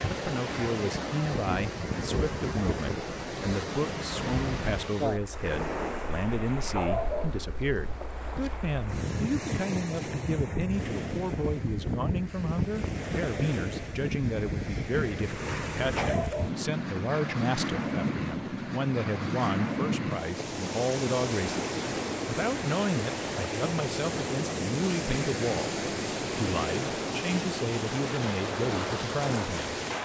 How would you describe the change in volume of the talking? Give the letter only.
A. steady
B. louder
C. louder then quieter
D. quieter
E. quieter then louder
A.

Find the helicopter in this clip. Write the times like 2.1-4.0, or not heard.
not heard.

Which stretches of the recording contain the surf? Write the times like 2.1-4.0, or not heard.
0.0-29.9.